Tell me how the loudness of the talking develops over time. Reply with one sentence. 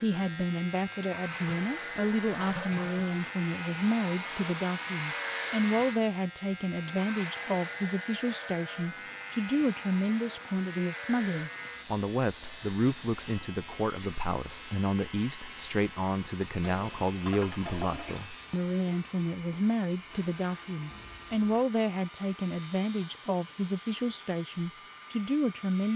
The volume of the talking stays about the same.